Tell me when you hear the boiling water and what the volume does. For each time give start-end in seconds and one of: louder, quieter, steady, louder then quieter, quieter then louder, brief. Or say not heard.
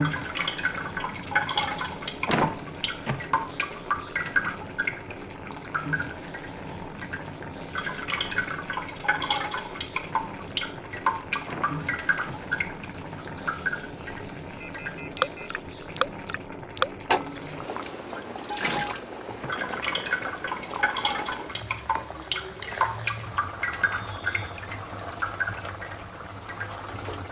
0.0-27.2 steady.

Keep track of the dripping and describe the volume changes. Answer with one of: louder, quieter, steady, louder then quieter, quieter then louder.
steady.